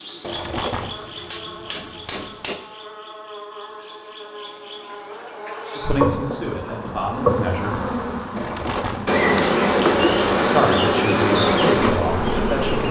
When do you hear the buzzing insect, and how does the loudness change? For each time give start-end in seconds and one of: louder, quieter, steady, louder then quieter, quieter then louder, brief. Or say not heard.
0.0-12.8 louder.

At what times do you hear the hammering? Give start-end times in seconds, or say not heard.
0.2-2.5, 8.3-10.1.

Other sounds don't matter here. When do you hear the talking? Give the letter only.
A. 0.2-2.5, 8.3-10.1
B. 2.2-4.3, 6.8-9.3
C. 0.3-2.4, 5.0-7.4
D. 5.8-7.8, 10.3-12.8
D.